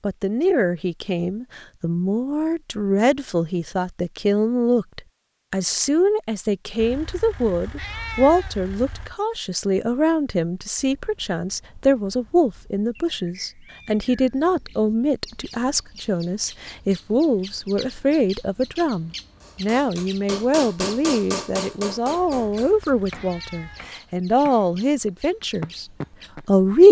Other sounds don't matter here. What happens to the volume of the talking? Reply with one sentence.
The volume of the talking stays about the same.